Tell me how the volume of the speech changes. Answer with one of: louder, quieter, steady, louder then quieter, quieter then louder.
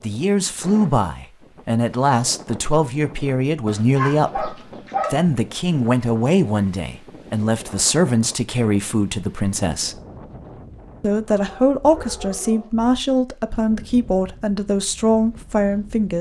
steady.